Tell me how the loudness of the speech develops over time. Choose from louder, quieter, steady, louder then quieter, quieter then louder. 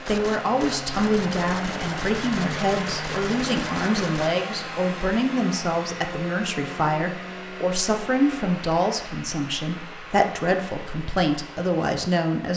steady.